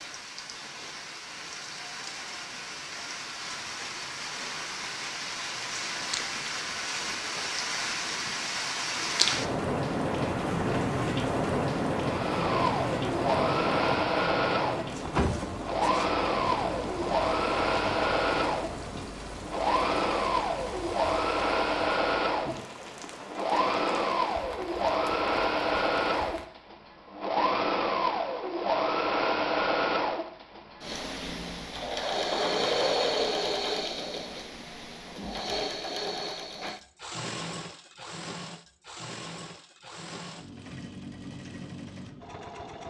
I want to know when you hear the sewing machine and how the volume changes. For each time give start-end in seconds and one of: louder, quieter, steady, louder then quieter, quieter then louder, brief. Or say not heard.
12.0-42.8 quieter.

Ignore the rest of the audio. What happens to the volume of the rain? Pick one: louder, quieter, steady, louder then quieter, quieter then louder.
louder then quieter.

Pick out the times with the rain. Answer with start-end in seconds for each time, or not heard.
0.0-26.5.